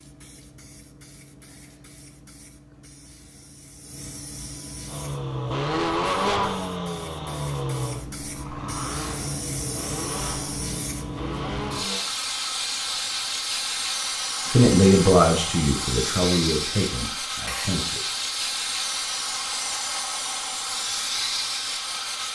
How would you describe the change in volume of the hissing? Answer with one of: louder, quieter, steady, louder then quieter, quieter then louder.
louder.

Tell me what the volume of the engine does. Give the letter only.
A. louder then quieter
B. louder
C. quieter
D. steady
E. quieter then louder
C.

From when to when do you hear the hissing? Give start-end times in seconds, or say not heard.
0.0-22.2.